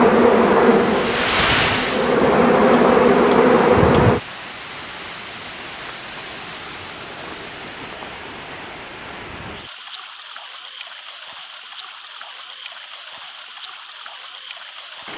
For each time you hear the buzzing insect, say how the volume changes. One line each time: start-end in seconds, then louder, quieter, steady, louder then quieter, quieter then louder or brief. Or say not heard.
0.0-4.2 quieter then louder.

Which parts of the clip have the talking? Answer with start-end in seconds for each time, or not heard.
not heard.